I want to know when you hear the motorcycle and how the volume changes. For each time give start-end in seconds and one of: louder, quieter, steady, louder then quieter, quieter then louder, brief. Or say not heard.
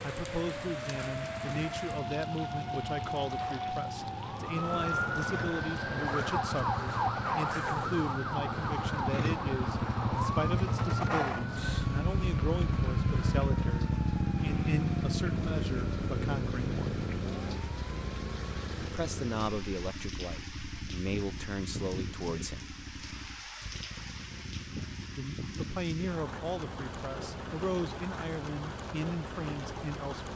0.0-30.3 louder then quieter.